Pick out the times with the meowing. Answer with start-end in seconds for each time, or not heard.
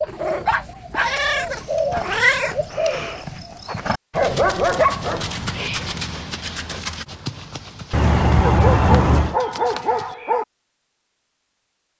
0.1-2.5, 7.9-9.3.